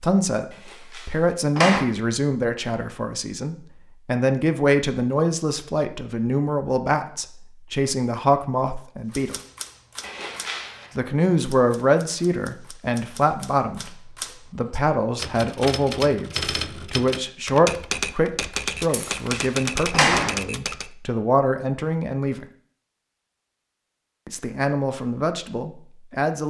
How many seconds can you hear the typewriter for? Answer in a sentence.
The typewriter can be heard for 12 seconds in total.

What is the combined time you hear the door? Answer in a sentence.
You can hear the door for 4 seconds altogether.